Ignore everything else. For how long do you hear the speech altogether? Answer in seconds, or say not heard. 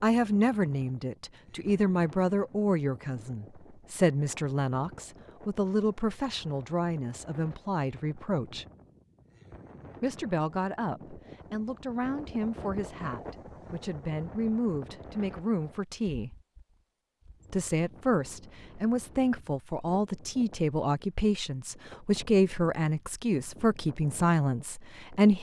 23 s.